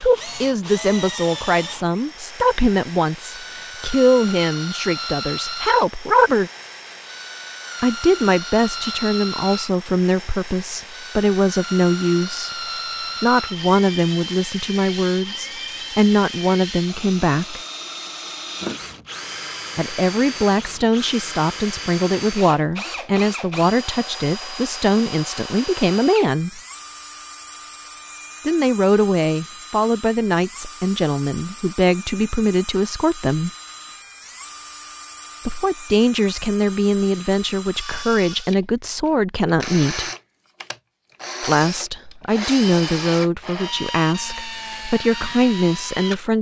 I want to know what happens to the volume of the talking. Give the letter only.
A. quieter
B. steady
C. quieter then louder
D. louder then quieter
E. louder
B.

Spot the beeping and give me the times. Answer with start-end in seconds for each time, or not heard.
not heard.